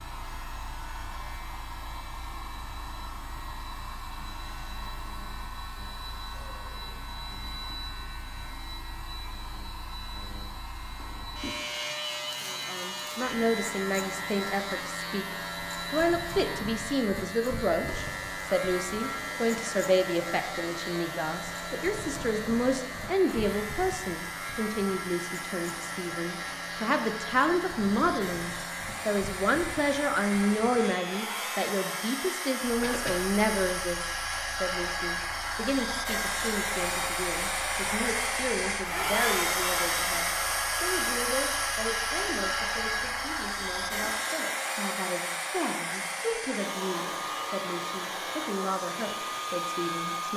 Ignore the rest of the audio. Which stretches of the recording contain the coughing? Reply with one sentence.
The coughing can be heard from 32.8 to 33.2 s.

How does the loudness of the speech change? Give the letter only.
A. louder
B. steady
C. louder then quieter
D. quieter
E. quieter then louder
D.